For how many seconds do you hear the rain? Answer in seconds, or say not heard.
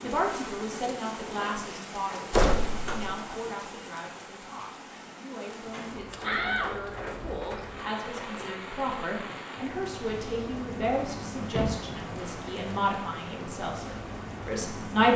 15 s.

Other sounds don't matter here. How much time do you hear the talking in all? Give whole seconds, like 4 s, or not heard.
15 s.